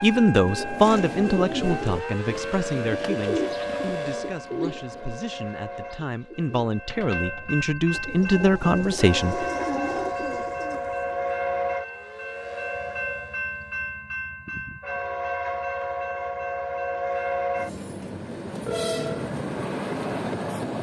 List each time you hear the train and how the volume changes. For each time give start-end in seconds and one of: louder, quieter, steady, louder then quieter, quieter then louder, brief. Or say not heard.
0.1-20.7 louder.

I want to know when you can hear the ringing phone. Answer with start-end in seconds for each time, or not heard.
18.6-19.3.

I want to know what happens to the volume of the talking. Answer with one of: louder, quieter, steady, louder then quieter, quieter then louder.
quieter then louder.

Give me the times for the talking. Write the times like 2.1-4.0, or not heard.
0.0-9.4.